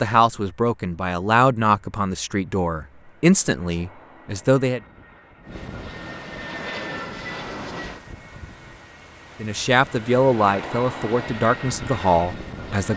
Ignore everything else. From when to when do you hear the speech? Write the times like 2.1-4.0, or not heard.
0.0-4.8, 9.4-12.9.